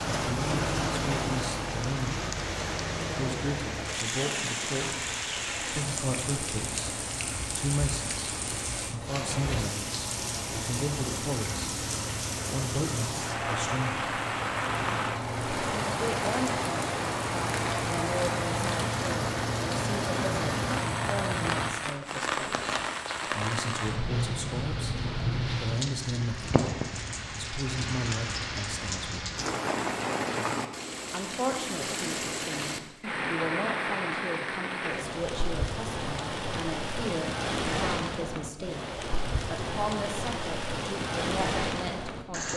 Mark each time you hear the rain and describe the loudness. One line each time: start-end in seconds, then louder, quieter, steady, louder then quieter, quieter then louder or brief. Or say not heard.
0.0-42.5 steady.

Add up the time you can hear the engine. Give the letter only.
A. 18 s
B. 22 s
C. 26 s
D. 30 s
B.